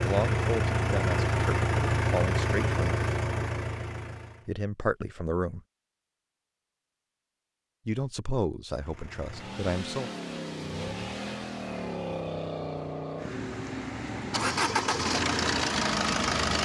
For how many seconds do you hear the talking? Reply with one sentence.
You can hear the talking for 6 seconds altogether.